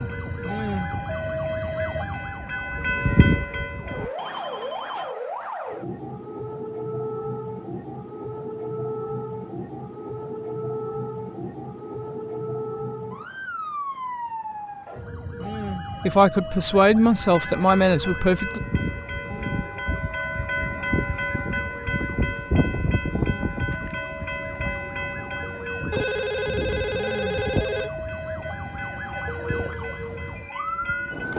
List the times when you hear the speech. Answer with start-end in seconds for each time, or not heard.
16.1-18.6.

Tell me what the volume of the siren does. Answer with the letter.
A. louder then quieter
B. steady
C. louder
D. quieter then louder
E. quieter
D.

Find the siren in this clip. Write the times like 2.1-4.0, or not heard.
0.0-31.3.